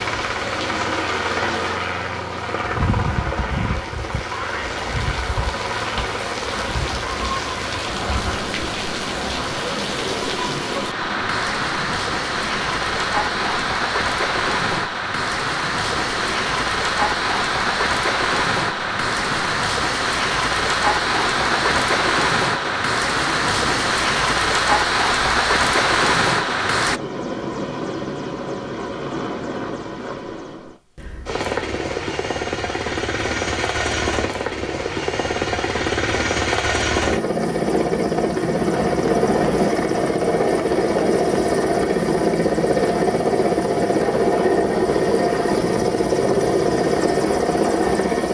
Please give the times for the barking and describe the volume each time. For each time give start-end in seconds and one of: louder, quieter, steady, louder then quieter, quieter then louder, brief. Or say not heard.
not heard.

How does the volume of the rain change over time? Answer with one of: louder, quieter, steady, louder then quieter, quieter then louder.
louder.